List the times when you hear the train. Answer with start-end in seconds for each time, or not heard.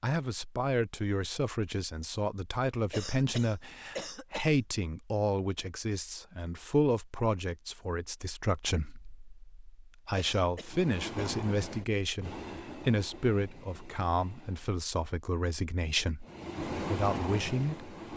10.6-14.8, 16.2-18.1.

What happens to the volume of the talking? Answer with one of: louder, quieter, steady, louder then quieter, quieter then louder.
steady.